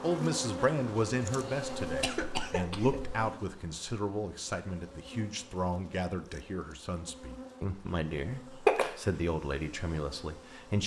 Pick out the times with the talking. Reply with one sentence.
You can hear the talking from 0.0 to 10.8 s.